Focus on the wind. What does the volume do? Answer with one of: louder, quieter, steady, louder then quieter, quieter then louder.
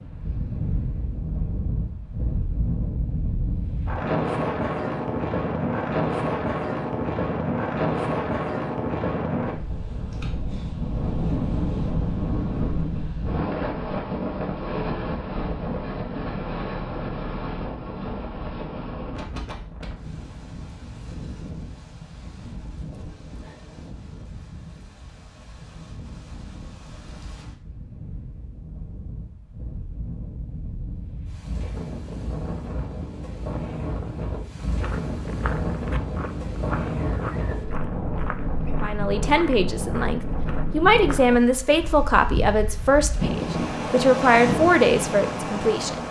quieter then louder.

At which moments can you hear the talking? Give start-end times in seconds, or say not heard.
38.8-46.0.